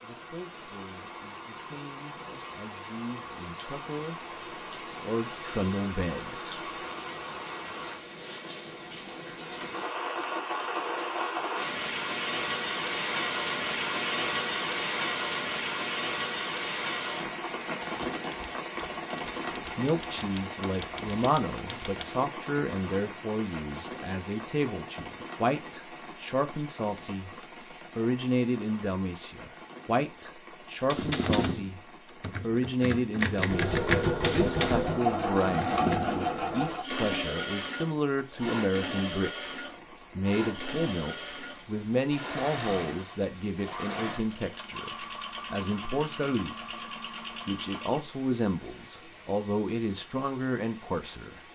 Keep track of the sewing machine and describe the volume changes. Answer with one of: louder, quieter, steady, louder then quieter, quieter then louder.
quieter.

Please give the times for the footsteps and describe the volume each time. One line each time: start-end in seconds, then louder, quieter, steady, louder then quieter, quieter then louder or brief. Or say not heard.
not heard.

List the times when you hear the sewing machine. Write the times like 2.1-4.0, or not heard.
33.4-48.0.